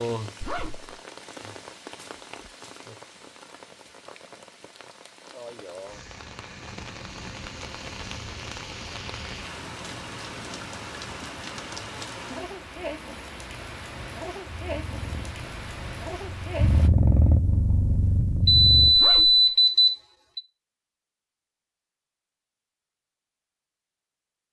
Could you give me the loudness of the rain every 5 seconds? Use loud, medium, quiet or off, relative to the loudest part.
loud, loud, loud, loud, off.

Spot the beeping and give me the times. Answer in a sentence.
The beeping can be heard from 18.4 to 20.4 s.